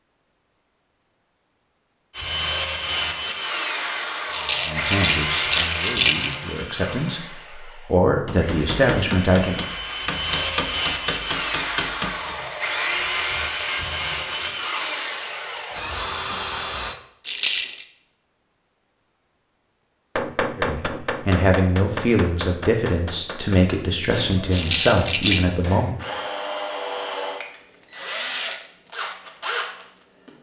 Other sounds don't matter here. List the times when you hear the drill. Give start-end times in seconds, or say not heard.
2.1-17.0, 25.9-30.3.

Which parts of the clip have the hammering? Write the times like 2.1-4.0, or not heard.
8.2-12.3, 20.1-25.9.